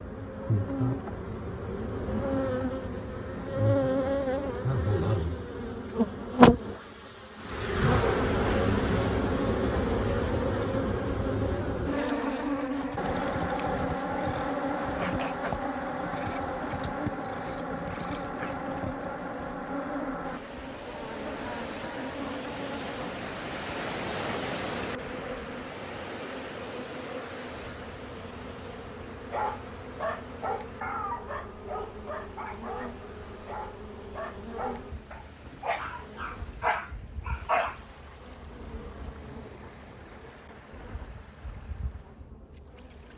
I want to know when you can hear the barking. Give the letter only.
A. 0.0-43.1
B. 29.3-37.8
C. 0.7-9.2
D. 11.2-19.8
B.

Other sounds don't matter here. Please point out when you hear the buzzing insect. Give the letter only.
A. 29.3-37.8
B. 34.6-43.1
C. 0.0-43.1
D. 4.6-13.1
C.